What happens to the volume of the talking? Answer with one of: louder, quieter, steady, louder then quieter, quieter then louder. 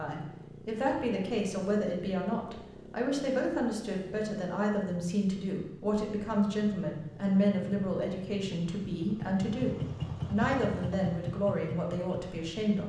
steady.